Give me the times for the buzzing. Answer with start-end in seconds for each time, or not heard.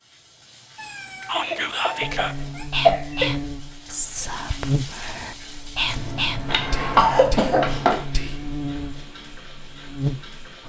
2.0-10.3.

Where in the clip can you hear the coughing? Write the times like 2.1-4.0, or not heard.
1.3-3.4, 6.5-8.1.